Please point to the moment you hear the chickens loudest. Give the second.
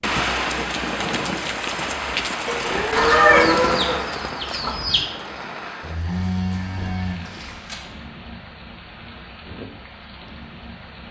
3 s.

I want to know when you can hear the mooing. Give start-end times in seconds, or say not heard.
2.5-4.0, 5.8-7.8.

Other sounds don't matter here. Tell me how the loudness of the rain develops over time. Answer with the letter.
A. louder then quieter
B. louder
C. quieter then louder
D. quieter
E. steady
D.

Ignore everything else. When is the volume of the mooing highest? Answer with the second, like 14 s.
3 s.